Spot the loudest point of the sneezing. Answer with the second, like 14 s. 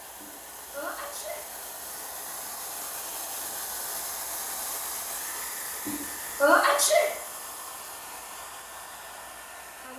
7 s.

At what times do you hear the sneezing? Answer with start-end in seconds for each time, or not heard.
0.2-1.4, 5.8-7.1.